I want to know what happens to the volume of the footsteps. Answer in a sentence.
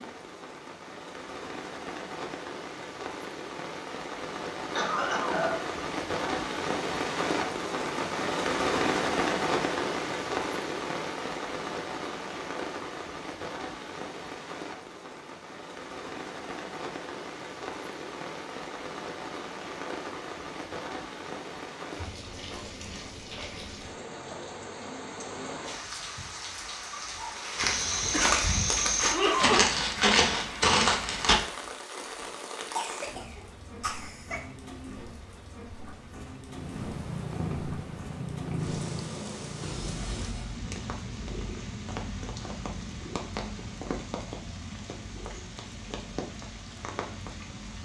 The loudness of the footsteps goes up.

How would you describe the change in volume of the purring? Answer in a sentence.
The volume of the purring goes down.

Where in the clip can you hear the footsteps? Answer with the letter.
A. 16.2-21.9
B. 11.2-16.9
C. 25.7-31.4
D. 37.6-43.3
C.